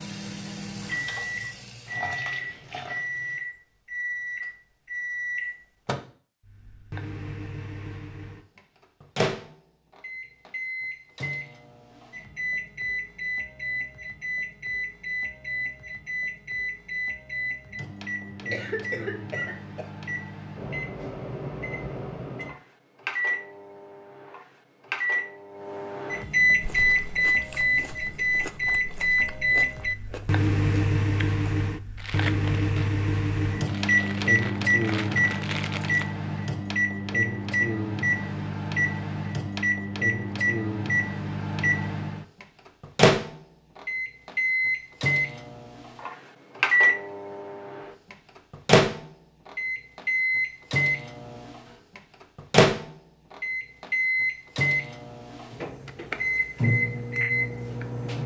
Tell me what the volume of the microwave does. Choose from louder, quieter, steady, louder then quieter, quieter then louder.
louder.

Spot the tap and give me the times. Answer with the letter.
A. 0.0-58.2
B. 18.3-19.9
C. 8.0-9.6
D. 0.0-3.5
D.